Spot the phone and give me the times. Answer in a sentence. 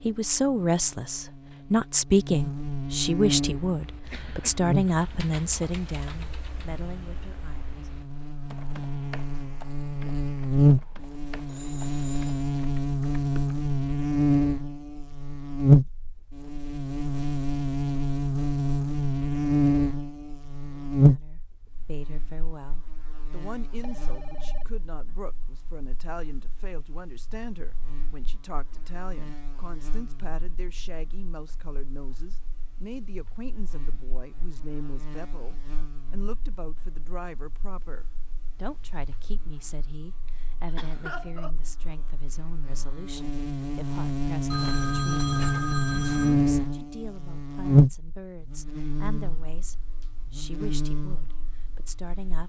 You can hear the phone from 11.4 to 12.4 s, from 23.8 to 24.6 s and from 44.5 to 46.5 s.